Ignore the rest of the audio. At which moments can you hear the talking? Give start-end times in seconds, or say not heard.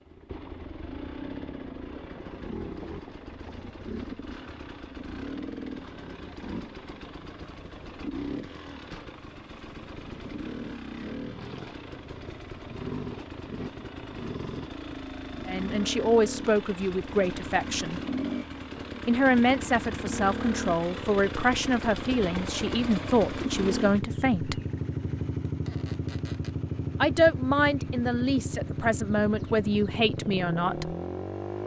15.4-18.0, 19.1-24.6, 27.0-30.9.